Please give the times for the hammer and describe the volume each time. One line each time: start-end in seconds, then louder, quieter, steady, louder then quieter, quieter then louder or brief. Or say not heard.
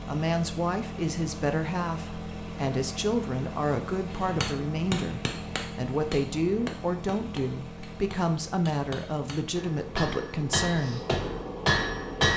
4.2-12.3 quieter then louder.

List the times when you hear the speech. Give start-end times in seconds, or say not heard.
0.1-11.1.